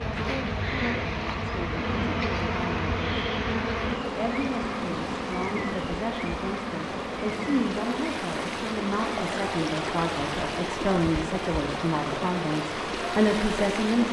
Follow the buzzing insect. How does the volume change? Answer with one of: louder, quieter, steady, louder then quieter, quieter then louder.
quieter.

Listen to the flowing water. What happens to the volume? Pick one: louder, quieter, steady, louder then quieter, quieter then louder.
louder.